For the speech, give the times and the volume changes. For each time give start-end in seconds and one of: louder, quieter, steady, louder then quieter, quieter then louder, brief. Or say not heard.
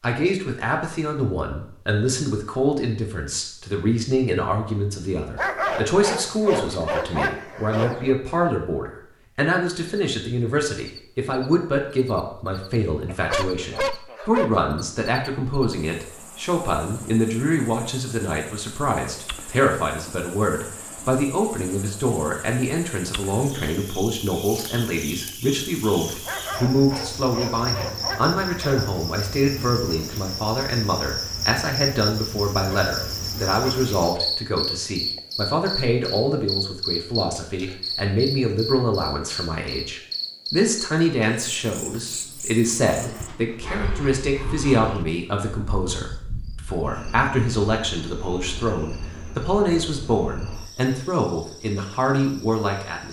0.0-53.0 steady.